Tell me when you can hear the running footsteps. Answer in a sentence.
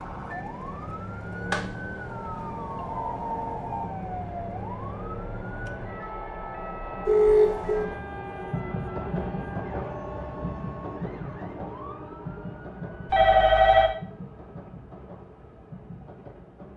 You can't hear the running footsteps here.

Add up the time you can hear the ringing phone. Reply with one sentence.
You can hear the ringing phone for 4 seconds altogether.